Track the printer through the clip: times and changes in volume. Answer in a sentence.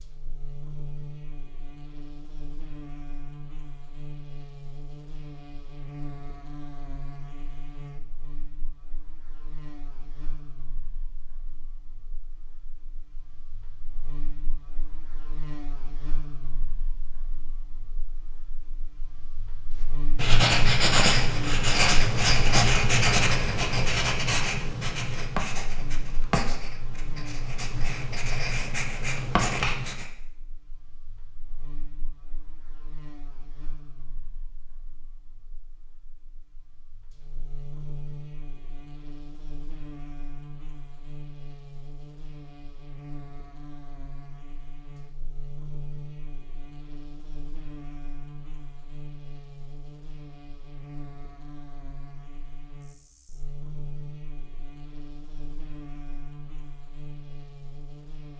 The printer can't be heard in this clip.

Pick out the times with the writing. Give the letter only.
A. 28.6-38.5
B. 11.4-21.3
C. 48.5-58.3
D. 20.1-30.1
D.